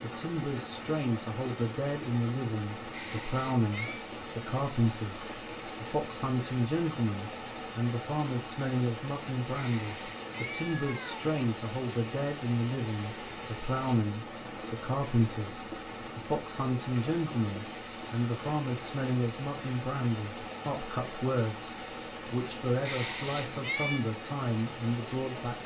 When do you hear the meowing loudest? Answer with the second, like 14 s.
24 s.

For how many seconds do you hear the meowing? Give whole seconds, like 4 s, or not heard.
4 s.